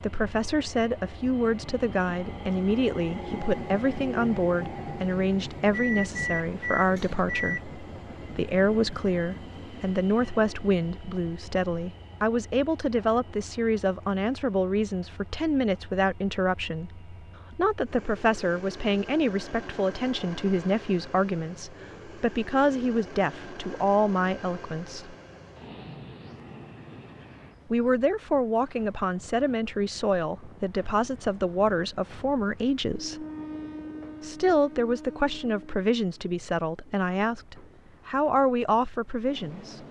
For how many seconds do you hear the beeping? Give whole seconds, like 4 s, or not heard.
2 s.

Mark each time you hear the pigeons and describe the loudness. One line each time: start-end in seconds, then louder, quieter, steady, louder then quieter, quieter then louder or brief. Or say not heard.
not heard.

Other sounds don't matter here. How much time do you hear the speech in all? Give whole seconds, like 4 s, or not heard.
36 s.